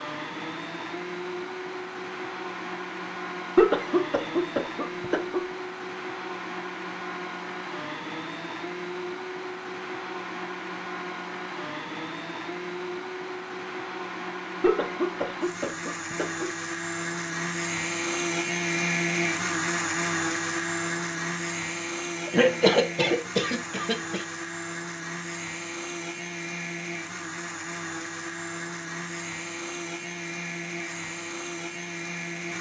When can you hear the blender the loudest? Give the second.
19 s.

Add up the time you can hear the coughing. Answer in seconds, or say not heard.
6 s.